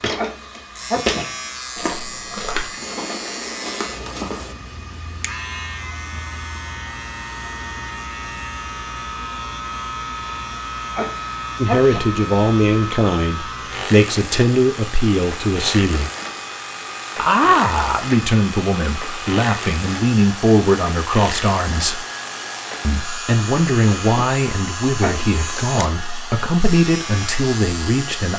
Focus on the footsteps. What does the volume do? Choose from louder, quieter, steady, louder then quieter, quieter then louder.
quieter.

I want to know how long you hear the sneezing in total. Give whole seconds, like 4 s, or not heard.
3 s.